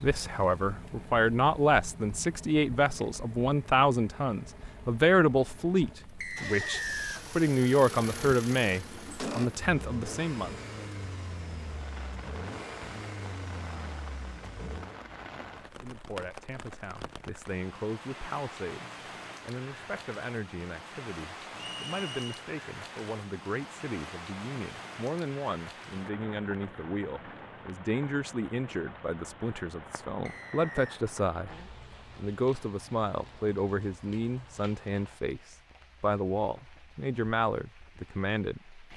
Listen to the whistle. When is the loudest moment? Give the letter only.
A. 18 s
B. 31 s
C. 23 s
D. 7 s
D.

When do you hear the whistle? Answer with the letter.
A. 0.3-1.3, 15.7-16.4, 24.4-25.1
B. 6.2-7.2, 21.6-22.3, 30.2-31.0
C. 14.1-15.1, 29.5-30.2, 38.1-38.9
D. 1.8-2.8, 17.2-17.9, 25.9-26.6
B.